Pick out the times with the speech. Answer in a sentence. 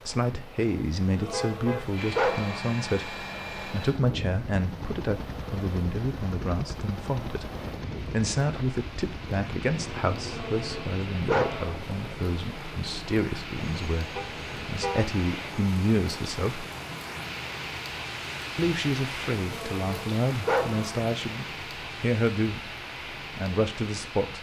The speech can be heard from 0.1 to 16.6 s and from 18.6 to 24.3 s.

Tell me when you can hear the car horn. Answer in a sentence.
The car horn can be heard from 1.2 to 1.9 s and from 14.2 to 15.1 s.